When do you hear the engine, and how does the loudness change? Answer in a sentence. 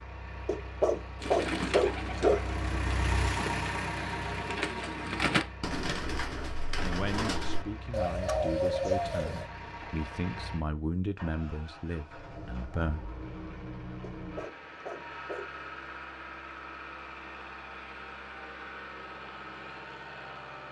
The engine can be heard from 0.0 to 20.6 s, getting quieter.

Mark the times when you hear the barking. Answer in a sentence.
The barking can be heard from 0.5 to 2.5 s and from 14.0 to 15.5 s.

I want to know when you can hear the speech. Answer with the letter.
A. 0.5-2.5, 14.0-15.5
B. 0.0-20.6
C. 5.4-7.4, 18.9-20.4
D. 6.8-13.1
D.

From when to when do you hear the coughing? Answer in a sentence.
You can't hear the coughing here.